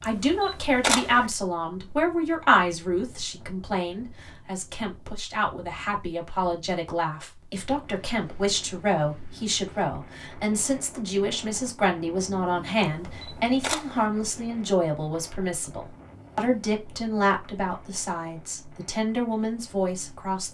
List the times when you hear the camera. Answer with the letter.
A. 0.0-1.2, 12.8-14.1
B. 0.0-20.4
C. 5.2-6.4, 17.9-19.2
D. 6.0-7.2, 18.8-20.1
A.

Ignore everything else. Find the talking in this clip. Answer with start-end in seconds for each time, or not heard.
0.0-20.4.